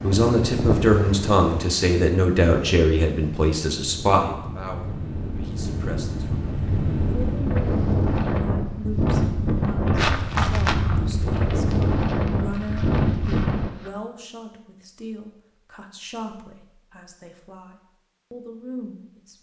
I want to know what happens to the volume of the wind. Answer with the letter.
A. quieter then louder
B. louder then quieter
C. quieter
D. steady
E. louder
A.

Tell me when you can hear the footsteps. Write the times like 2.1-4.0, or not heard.
9.9-13.9.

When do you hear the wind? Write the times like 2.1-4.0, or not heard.
0.0-13.7.